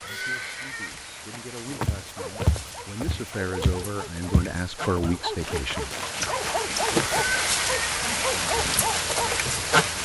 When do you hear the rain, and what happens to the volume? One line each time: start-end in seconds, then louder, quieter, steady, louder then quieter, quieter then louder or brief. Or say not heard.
0.0-9.9 louder.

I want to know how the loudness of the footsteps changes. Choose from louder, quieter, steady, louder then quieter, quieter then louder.
quieter.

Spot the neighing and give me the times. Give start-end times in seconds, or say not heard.
0.0-0.9, 7.0-8.2.